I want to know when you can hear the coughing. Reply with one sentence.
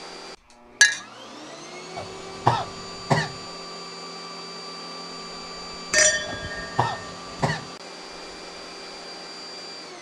The coughing can be heard from 1.9 to 3.4 s and from 6.2 to 7.7 s.